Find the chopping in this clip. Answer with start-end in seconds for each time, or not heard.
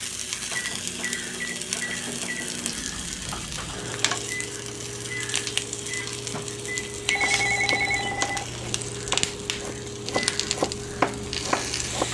7.0-12.1.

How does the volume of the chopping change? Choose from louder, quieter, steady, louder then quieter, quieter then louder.
quieter then louder.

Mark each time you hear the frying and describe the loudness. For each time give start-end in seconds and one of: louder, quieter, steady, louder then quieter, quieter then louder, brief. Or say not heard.
0.0-12.1 steady.